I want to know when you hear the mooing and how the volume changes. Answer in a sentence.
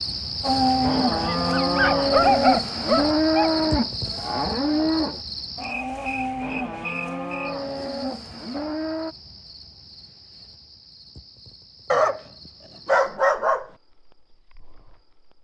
The mooing can be heard from 0.4 to 9.2 s, getting quieter.